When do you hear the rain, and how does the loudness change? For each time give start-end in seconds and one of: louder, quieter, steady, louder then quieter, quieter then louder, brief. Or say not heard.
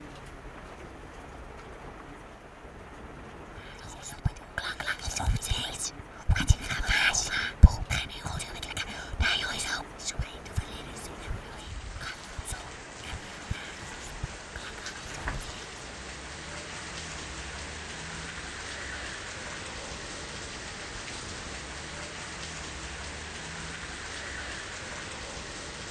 0.0-25.8 louder.